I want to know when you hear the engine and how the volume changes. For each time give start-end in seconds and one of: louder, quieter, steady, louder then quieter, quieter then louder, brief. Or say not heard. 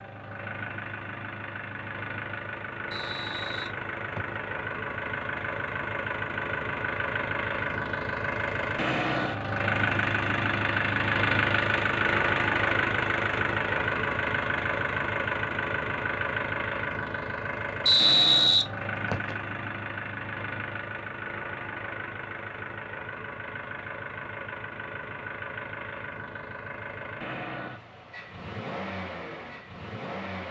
0.0-30.4 louder then quieter.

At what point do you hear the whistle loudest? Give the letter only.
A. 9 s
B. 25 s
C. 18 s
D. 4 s
C.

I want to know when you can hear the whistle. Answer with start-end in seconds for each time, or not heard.
2.9-4.4, 17.9-19.4.